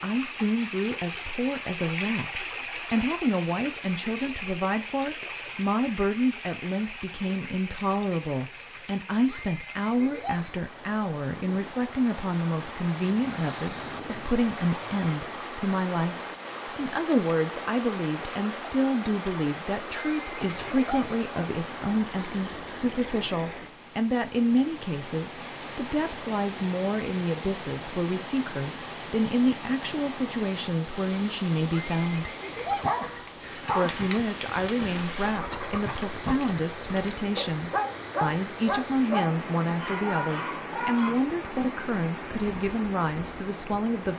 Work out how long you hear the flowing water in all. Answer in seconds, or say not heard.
44 s.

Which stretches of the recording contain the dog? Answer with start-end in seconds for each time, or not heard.
32.6-41.2.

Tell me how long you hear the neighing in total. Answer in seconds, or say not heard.
4 s.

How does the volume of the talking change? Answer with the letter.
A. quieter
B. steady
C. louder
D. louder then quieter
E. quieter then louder
B.